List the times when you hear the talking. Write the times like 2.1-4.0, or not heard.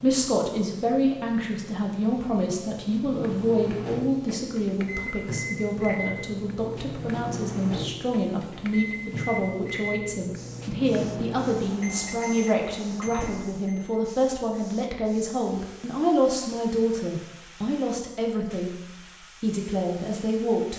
0.0-18.8, 19.4-20.7.